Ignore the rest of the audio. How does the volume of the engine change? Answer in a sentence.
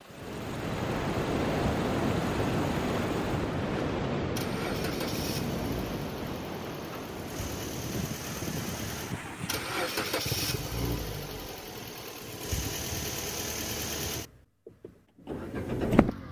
The volume of the engine goes up.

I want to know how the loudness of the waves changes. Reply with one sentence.
The loudness of the waves goes down.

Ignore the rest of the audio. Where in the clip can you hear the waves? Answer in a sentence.
You can hear the waves from 0.1 to 10.2 s.